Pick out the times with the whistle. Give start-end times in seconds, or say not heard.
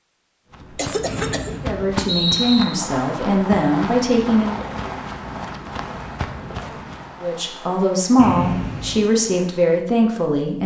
1.1-2.6, 8.2-9.0.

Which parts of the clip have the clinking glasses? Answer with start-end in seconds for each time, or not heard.
not heard.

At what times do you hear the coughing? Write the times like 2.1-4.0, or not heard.
0.8-1.6.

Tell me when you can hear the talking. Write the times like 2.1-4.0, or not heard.
1.6-4.6, 7.2-10.6.